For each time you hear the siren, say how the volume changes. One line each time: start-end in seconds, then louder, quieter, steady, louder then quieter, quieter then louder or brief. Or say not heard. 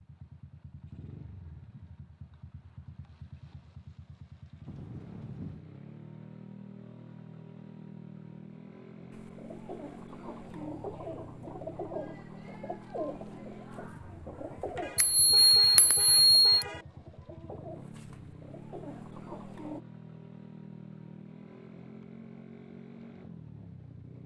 not heard.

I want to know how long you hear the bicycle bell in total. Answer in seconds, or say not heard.
2 s.